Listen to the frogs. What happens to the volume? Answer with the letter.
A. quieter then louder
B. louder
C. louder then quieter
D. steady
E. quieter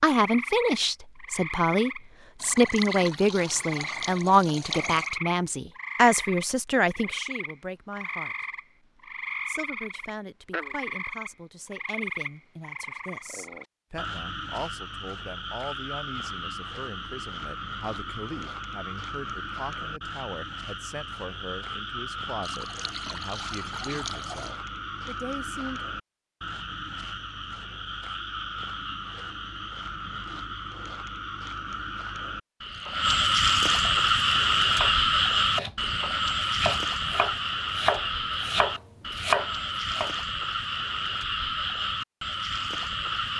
B.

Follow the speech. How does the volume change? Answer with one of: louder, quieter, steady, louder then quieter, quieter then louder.
quieter.